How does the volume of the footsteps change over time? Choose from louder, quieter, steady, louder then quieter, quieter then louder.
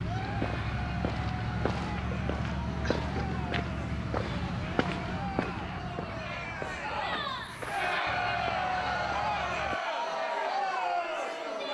quieter.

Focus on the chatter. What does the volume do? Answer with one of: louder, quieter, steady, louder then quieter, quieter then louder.
louder.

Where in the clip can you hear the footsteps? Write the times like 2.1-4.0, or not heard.
0.0-9.8.